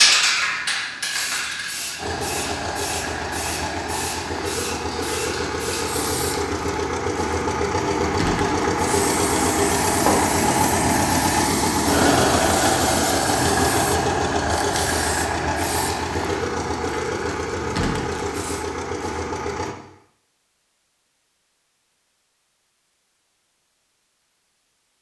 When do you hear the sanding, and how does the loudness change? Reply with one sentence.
The sanding can't be heard in this clip.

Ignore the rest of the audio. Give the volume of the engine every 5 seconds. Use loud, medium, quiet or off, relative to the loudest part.
medium, loud, loud, medium, off.